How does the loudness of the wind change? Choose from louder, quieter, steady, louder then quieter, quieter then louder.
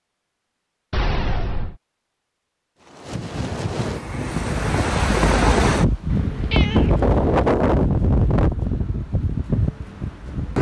louder then quieter.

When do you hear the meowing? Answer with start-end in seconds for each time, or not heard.
0.9-1.8, 6.1-7.5.